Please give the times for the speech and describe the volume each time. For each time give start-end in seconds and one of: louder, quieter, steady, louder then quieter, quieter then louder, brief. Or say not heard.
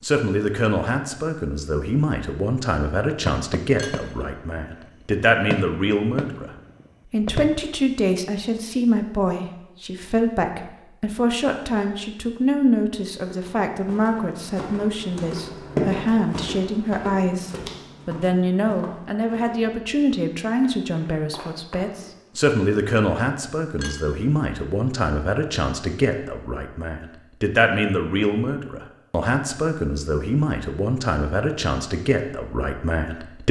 0.0-6.5 quieter then louder
7.1-33.4 steady.